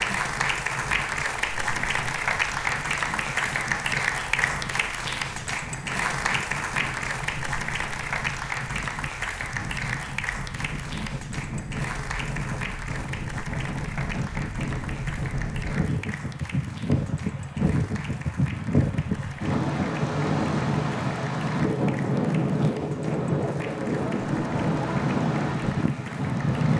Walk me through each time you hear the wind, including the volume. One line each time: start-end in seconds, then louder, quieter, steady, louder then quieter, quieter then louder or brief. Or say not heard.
0.0-26.7 louder.